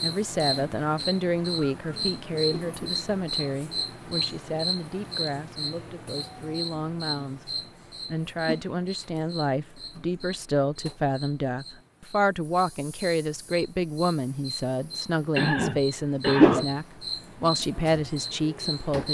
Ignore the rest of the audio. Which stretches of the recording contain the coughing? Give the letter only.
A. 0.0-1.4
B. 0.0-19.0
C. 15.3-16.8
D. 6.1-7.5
C.